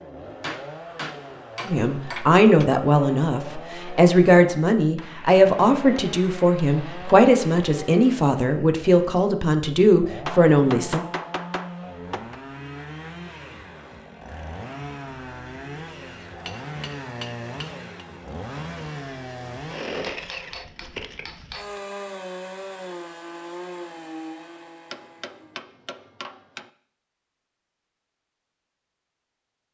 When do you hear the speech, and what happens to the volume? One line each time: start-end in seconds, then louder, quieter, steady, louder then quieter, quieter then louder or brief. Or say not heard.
1.6-11.0 steady.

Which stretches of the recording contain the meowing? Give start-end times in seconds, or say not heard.
not heard.